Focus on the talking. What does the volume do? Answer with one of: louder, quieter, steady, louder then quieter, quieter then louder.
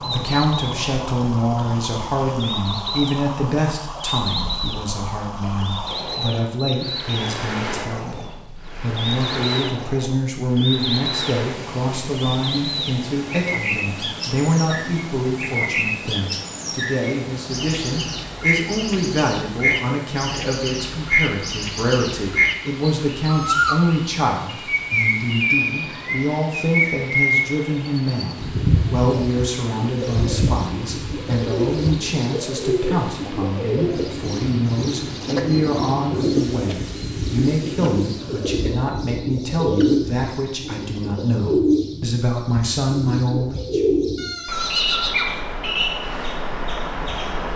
steady.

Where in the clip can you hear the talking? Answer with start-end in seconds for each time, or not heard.
0.1-43.8.